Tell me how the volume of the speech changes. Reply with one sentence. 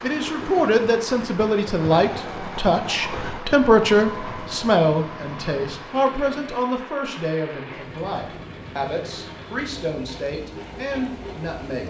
The loudness of the speech goes down.